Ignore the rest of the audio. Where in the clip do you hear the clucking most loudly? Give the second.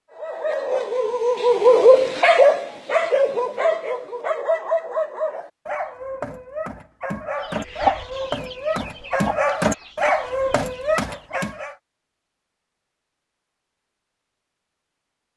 8 s.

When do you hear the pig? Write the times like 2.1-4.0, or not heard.
not heard.